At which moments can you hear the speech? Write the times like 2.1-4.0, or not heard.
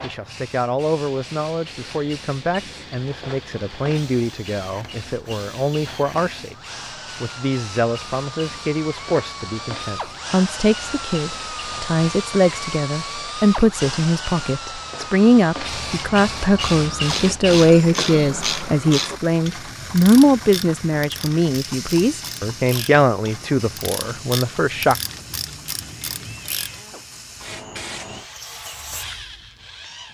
0.0-25.0.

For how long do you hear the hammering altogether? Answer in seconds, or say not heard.
not heard.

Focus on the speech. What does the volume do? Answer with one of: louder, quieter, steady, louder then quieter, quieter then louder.
louder.